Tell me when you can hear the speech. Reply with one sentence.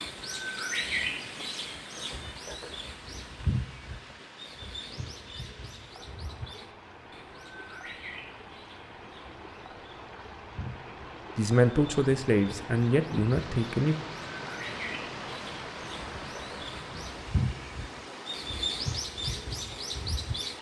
The speech can be heard from 11.3 to 13.9 s.